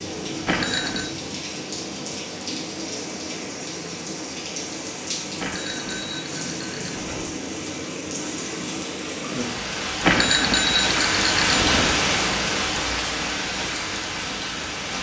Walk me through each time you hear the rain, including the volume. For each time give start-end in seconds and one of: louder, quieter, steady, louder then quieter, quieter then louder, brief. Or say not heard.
0.0-14.9 louder.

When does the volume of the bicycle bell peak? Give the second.
10 s.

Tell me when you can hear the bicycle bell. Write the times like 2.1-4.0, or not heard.
0.5-1.1, 5.4-7.3, 10.0-11.9.